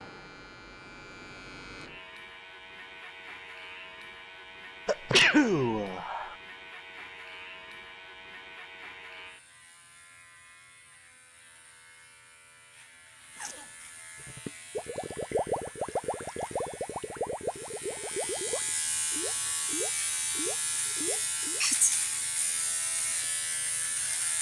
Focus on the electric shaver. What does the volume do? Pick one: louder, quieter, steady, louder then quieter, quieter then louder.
quieter then louder.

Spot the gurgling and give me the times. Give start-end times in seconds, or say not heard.
14.2-21.6.